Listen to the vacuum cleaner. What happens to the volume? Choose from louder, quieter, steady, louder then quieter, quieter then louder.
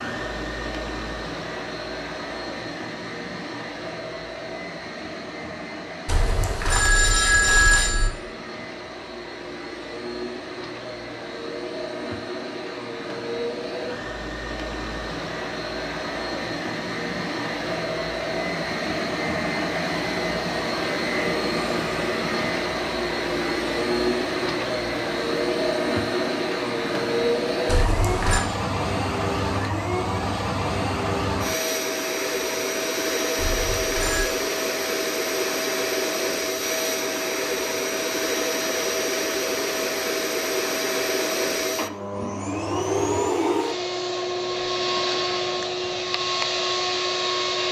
louder.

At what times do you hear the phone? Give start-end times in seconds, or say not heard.
6.0-8.1, 27.6-28.4, 33.4-34.2.